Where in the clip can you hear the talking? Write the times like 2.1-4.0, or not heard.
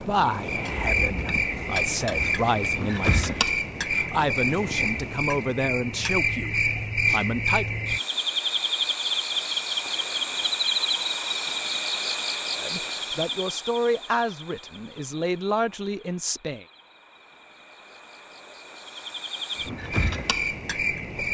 0.0-7.8, 12.6-16.6.